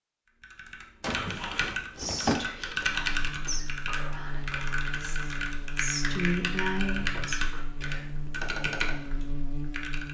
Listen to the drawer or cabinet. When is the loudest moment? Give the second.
2 s.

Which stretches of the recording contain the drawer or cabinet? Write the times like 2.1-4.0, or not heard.
1.0-2.4, 7.0-7.4.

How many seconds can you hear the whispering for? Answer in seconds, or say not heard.
7 s.